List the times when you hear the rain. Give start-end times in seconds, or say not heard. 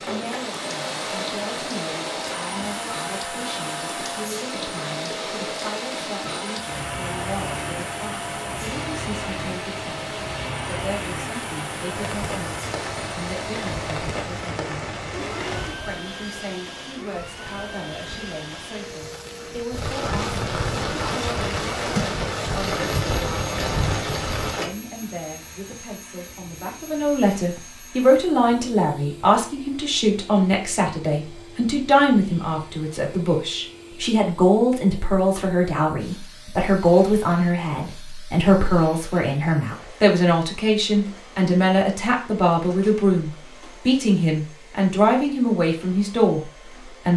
0.0-24.7.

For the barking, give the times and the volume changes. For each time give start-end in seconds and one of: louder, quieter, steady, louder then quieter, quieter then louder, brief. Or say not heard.
not heard.